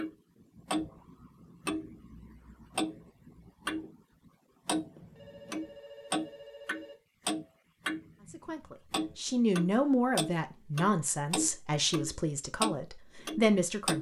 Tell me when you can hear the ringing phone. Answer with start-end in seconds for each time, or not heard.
5.0-7.0.